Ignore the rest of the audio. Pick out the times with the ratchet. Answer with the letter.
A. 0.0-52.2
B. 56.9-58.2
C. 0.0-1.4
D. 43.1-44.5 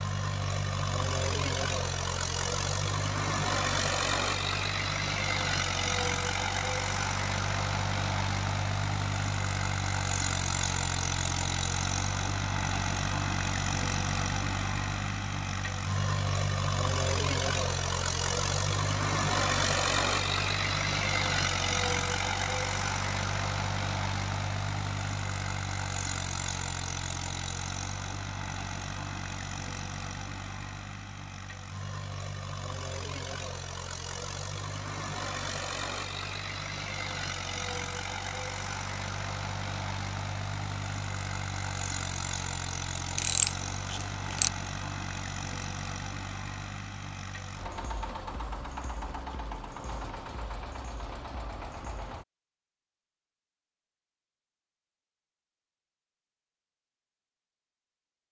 D.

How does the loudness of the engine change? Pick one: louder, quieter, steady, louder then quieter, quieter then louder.
quieter.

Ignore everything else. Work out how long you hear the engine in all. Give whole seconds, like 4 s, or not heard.
52 s.